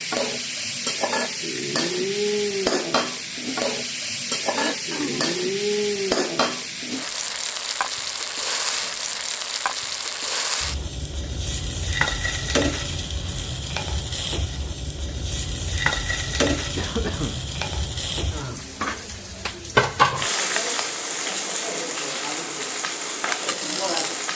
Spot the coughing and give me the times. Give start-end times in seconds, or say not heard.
4.5-5.3, 16.8-17.4.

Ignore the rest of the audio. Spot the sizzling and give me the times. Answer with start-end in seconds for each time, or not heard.
0.0-24.3.